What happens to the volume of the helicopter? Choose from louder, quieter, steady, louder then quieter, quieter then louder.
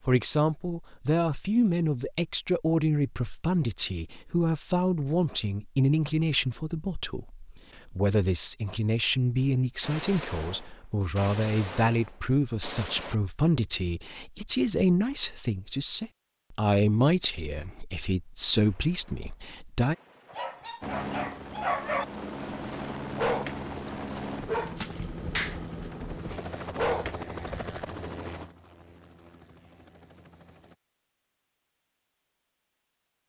quieter.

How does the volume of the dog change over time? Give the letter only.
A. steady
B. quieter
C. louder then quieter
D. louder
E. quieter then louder
A.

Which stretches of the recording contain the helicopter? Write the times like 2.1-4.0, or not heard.
20.8-30.8.